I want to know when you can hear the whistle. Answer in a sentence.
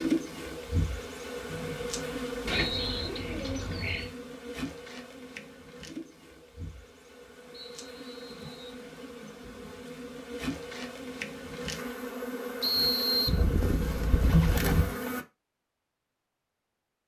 You can hear the whistle from 1.4 to 3.1 s, from 7.8 to 8.8 s and from 12.6 to 13.4 s.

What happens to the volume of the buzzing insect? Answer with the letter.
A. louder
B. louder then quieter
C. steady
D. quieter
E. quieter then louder
E.